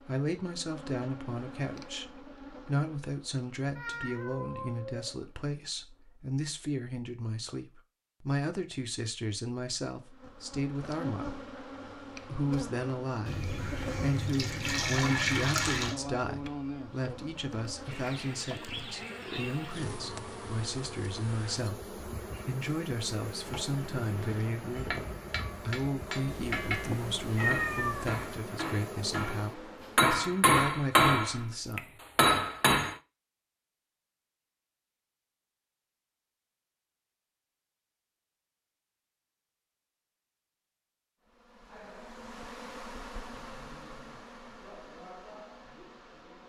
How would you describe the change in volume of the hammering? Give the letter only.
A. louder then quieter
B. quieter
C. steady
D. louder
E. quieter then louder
D.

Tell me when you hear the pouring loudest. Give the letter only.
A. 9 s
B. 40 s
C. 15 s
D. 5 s
C.